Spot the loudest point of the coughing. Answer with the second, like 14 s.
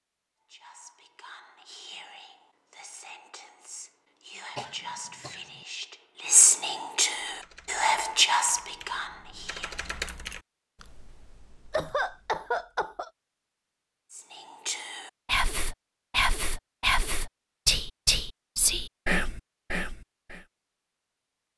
12 s.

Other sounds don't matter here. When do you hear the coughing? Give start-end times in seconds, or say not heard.
4.5-5.7, 11.7-13.1.